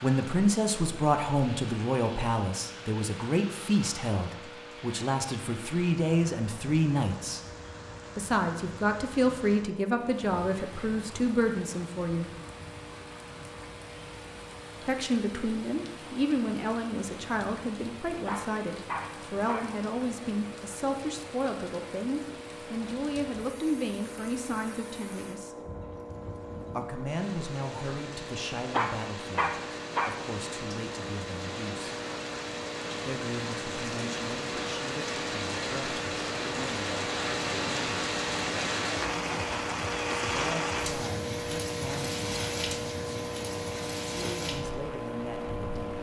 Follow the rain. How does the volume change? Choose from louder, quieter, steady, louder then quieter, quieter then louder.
louder.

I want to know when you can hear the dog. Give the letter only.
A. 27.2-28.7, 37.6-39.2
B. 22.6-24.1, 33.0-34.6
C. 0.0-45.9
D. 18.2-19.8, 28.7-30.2
D.